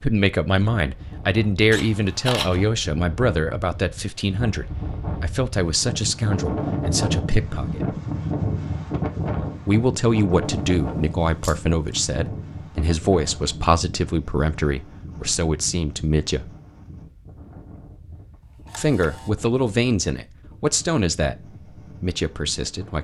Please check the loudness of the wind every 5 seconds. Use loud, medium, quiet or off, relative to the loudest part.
medium, loud, medium, quiet, quiet.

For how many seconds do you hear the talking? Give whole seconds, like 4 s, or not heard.
19 s.